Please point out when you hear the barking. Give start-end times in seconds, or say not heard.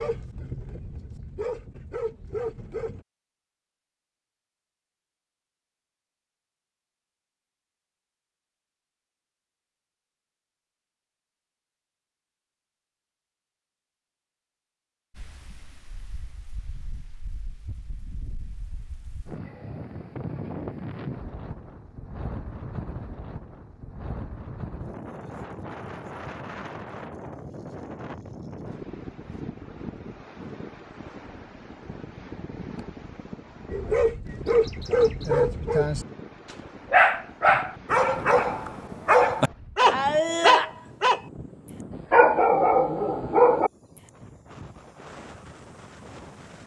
0.0-3.0, 33.7-41.2, 42.1-43.7.